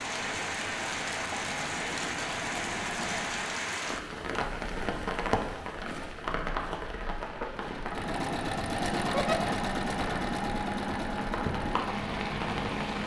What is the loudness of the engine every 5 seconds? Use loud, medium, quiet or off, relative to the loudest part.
medium, loud, loud.